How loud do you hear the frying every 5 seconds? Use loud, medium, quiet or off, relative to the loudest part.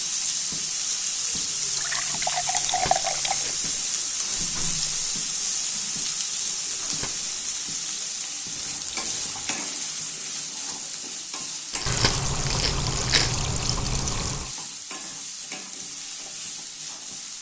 loud, loud, medium, medium.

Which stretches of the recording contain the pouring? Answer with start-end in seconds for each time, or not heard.
1.6-3.5, 8.6-9.6, 11.8-14.6.